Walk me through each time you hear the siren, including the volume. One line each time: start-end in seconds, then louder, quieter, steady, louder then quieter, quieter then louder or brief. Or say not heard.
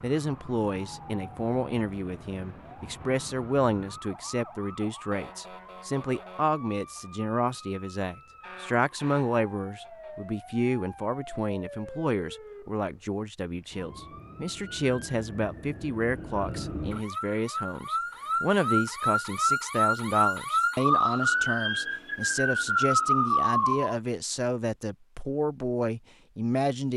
0.0-23.9 louder.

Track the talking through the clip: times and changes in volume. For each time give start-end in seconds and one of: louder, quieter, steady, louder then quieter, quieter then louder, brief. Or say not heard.
0.0-26.9 steady.